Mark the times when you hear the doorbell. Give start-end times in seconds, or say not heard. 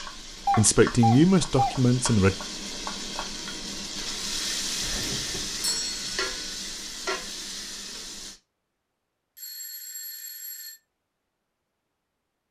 0.5-1.8, 4.8-6.3, 9.3-10.8.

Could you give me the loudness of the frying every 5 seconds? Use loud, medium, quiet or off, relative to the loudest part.
loud, loud, off.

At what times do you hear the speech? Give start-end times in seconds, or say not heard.
0.0-2.4.